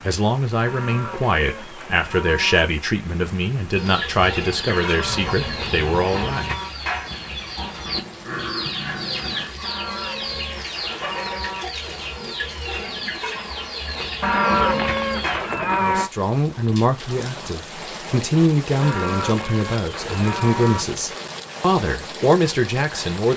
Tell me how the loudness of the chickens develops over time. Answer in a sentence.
The loudness of the chickens stays about the same.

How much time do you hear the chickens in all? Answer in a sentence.
The chickens can be heard for 12 seconds in total.